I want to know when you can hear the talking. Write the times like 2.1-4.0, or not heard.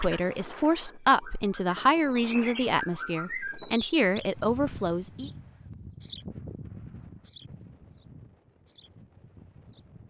0.0-5.3.